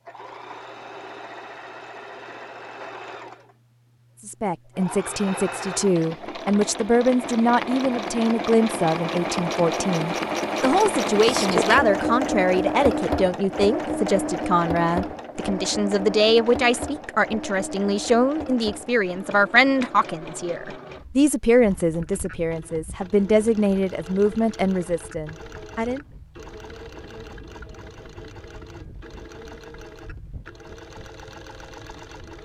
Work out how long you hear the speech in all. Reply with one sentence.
You can hear the speech for 22 seconds altogether.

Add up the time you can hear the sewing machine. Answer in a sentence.
You can hear the sewing machine for 32 seconds altogether.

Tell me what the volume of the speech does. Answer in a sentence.
The volume of the speech stays about the same.